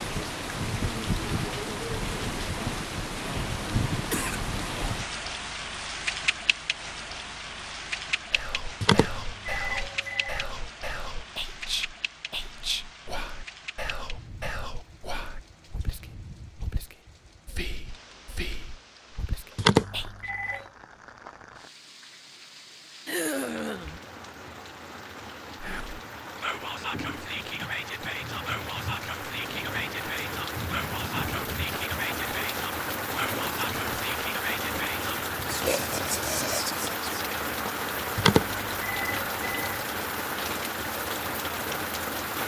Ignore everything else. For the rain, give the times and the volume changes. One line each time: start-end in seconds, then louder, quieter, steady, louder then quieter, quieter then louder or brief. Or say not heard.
0.0-42.4 quieter then louder.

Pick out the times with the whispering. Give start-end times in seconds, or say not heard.
8.3-20.3, 25.6-37.3.